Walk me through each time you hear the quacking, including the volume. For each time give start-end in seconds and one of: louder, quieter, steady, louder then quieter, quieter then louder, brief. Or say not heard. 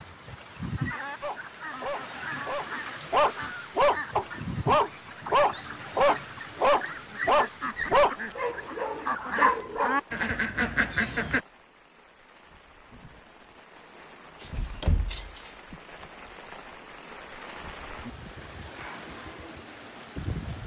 0.6-11.4 louder.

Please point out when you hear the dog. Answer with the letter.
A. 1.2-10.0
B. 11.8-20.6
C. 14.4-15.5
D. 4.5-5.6
A.